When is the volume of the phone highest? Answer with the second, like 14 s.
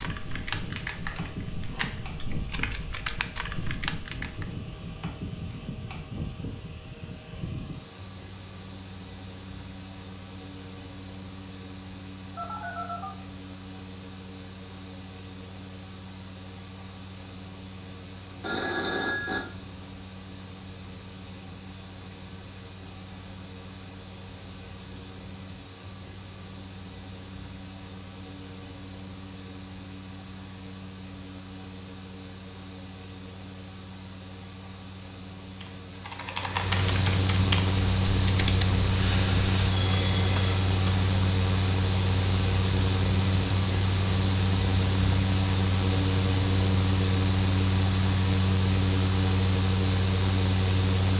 19 s.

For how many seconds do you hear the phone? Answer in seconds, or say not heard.
3 s.